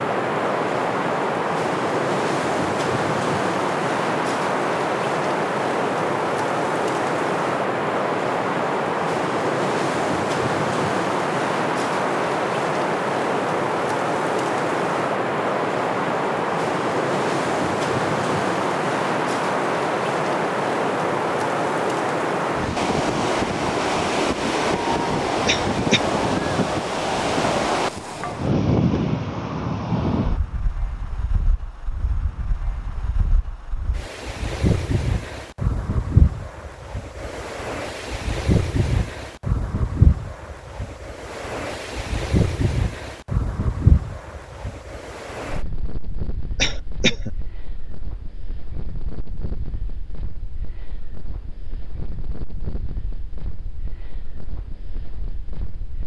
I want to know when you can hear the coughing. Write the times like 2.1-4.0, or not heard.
25.4-26.1, 46.6-47.3.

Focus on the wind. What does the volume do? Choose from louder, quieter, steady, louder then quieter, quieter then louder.
quieter.